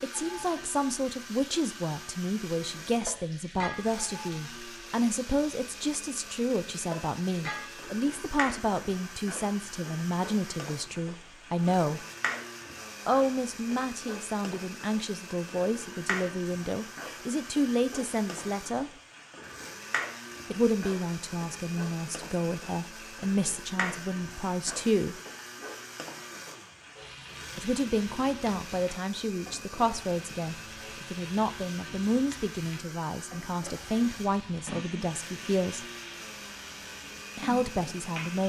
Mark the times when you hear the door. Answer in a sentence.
You can't hear the door here.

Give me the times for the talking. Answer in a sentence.
The talking can be heard from 0.0 to 12.1 s, from 13.1 to 18.9 s, from 20.5 to 25.2 s, from 27.6 to 35.9 s and from 37.4 to 38.4 s.